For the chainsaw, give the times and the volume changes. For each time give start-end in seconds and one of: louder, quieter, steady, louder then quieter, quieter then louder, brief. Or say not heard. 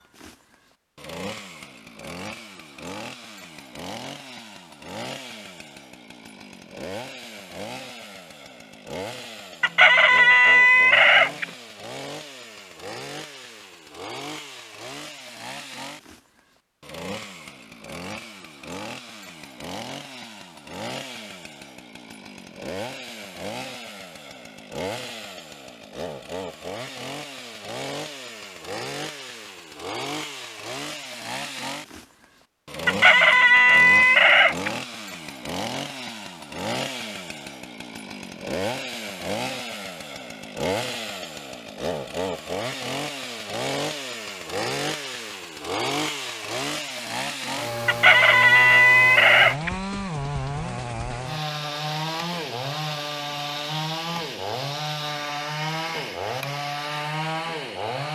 0.0-58.1 louder.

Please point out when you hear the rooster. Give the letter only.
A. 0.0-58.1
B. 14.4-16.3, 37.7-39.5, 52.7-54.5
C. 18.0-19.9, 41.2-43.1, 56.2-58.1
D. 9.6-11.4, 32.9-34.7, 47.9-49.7
D.